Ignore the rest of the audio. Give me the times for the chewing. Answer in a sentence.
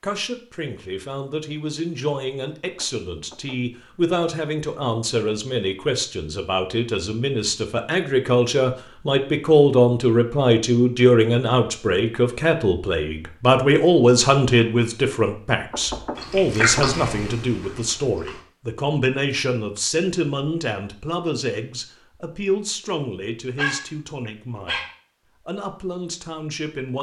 You can hear the chewing from 15.9 to 18.4 s.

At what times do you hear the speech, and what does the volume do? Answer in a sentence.
The speech can be heard from 0.0 to 24.9 s, getting louder then quieter; and briefly from 25.4 to 26.9 s.